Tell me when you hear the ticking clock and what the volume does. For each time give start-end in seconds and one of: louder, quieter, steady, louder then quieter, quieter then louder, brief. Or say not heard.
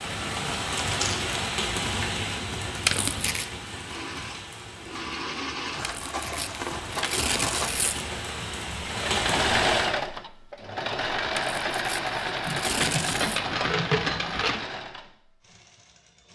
not heard.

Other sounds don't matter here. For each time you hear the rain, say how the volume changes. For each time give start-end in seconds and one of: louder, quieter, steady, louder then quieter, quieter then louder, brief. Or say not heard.
0.0-9.9 quieter then louder.